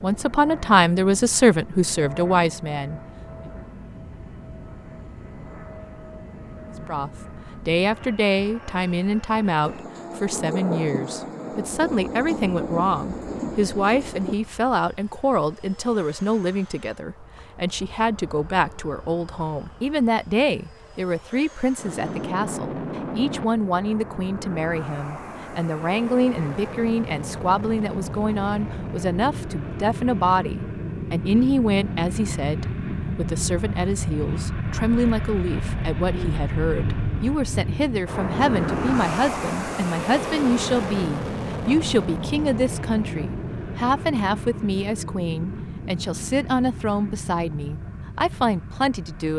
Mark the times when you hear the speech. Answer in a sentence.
You can hear the speech from 0.0 to 3.0 s and from 6.8 to 49.3 s.